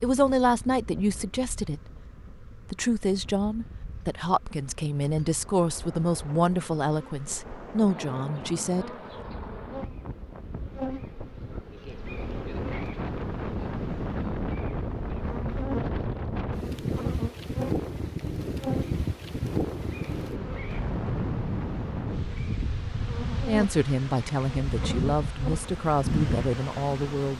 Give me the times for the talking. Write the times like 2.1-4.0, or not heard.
0.0-1.9, 2.7-8.9, 23.4-27.3.